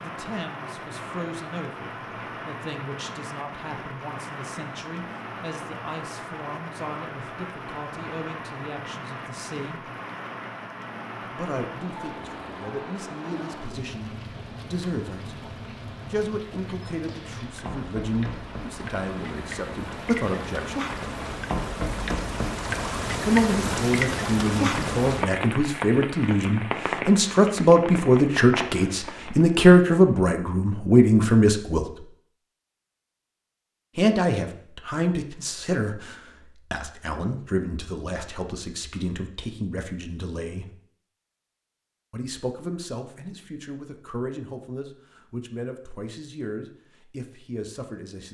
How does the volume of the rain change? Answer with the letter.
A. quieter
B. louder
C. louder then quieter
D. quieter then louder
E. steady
B.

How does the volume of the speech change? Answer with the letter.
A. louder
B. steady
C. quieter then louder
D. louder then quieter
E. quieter
D.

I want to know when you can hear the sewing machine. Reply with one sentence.
You can't hear the sewing machine here.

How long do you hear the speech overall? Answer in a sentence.
The speech can be heard for 41 seconds in total.